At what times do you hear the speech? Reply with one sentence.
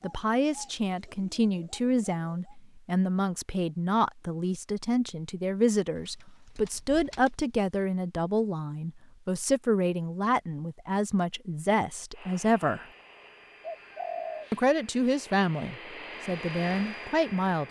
You can hear the speech from 0.0 to 12.8 s and from 14.5 to 17.6 s.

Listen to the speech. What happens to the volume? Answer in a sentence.
The volume of the speech stays about the same.